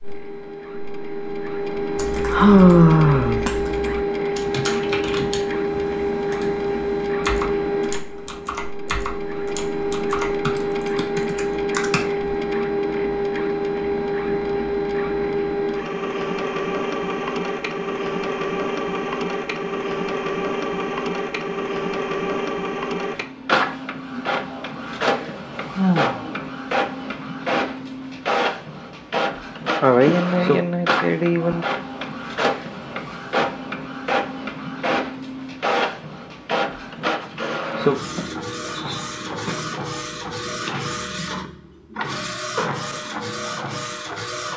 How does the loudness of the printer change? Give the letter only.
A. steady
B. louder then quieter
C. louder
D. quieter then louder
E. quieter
A.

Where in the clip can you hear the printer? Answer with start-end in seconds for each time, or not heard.
0.0-44.5.